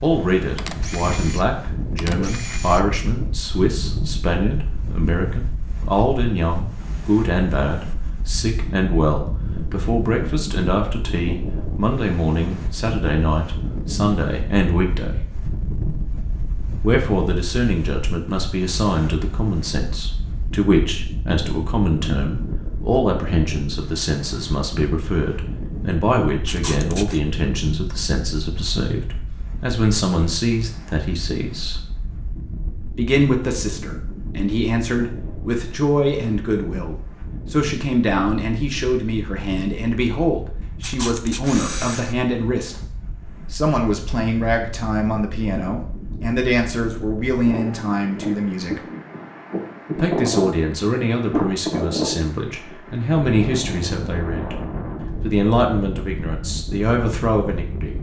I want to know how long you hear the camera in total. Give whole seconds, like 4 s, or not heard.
4 s.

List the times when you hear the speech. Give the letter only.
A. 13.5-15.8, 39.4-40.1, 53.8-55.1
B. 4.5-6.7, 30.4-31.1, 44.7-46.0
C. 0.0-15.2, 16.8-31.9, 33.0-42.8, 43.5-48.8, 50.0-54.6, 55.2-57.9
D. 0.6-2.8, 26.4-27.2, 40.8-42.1
C.